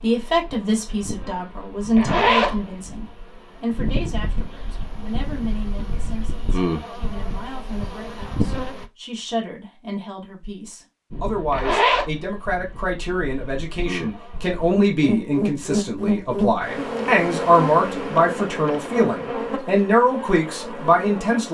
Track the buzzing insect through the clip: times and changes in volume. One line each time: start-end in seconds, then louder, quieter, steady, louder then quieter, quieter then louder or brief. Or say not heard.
0.0-8.8 louder
11.1-21.4 louder then quieter.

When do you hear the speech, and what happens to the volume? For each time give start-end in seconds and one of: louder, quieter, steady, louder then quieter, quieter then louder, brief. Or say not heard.
0.0-21.4 quieter then louder.